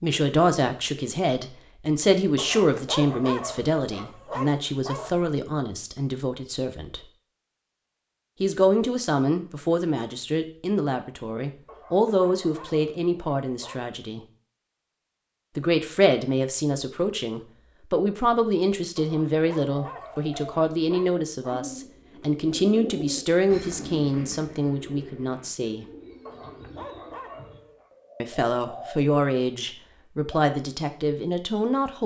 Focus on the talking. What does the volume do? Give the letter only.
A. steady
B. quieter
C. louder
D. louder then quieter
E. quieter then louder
A.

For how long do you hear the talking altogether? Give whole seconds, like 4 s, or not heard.
27 s.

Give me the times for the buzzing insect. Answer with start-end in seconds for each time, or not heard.
not heard.